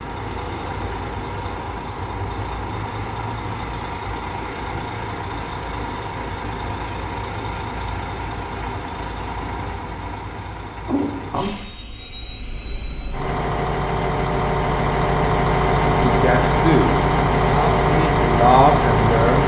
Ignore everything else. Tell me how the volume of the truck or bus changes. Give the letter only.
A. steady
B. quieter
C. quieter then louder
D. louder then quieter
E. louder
E.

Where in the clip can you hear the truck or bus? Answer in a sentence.
The truck or bus can be heard from 0.0 to 19.4 s.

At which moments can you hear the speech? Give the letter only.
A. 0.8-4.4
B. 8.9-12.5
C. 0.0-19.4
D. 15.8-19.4
D.